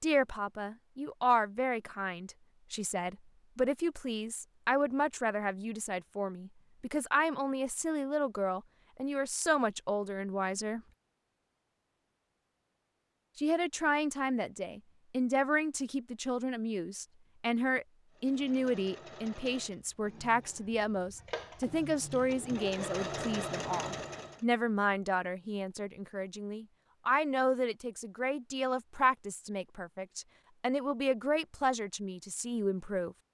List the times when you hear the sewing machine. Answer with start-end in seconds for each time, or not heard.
18.1-24.4.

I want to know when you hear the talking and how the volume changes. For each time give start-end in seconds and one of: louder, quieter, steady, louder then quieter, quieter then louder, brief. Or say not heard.
0.0-10.8 steady
13.3-33.1 steady.